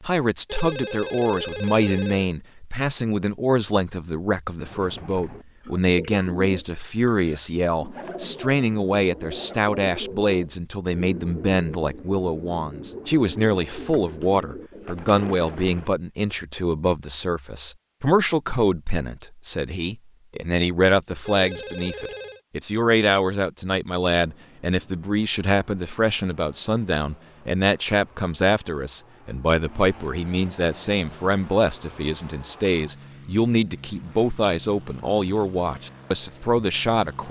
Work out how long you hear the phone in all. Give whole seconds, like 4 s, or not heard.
3 s.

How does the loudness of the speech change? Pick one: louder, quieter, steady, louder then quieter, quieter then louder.
steady.